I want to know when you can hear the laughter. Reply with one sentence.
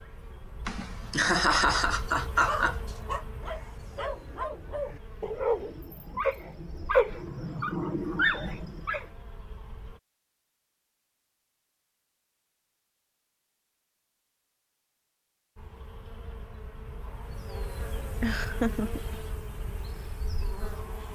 You can hear the laughter from 0.7 to 2.8 s and from 18.2 to 19.0 s.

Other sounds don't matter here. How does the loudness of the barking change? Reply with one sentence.
The volume of the barking goes up.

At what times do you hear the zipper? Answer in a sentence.
The zipper can't be heard in this clip.